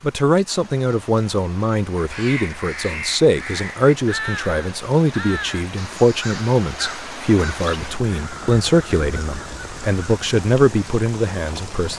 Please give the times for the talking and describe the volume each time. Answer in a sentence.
You can hear the talking from 0.0 to 11.9 s, at a steady volume.